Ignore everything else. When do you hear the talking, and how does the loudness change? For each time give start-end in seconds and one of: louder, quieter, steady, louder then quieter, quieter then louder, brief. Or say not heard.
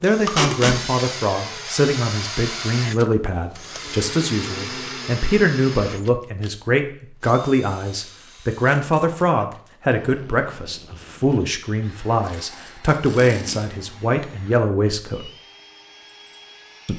0.0-15.3 steady.